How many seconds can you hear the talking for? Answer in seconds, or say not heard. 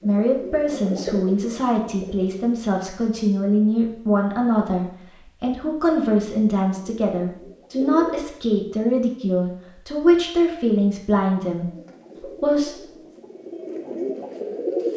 12 s.